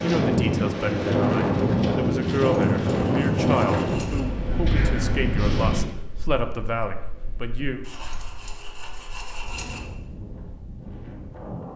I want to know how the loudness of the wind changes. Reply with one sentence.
The loudness of the wind goes down, then up.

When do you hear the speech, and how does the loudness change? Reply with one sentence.
The speech can be heard from 0.0 to 7.8 s, at a steady volume.